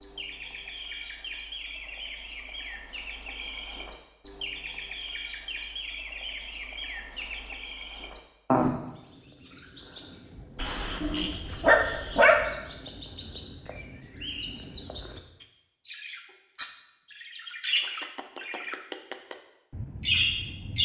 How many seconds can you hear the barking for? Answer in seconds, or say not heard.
2 s.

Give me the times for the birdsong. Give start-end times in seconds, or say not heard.
0.0-20.7.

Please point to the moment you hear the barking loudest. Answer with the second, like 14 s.
12 s.